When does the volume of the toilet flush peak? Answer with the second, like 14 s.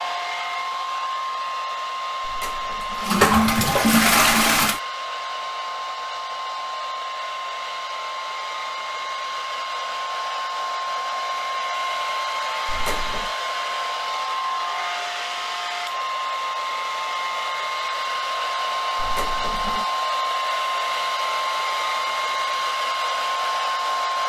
4 s.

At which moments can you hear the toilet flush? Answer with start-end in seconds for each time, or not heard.
2.2-4.8, 12.7-13.3, 18.9-19.9.